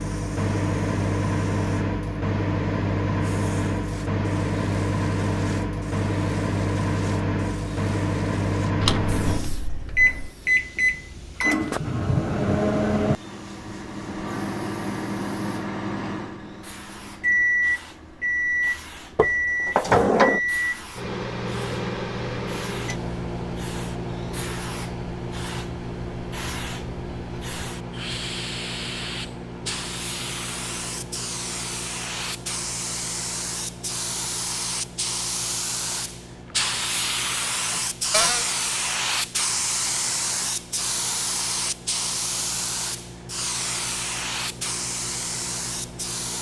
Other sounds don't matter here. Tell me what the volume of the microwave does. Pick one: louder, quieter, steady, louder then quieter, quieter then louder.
quieter.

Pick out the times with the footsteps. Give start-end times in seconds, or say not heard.
not heard.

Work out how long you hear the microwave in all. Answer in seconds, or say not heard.
46 s.